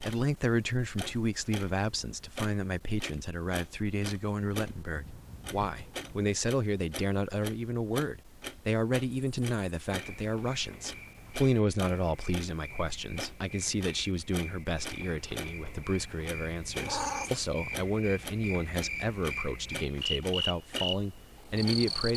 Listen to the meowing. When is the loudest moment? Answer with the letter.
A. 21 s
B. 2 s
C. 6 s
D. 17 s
D.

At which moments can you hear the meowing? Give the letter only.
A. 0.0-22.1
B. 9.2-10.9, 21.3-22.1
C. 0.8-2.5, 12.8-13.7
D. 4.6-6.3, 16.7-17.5
D.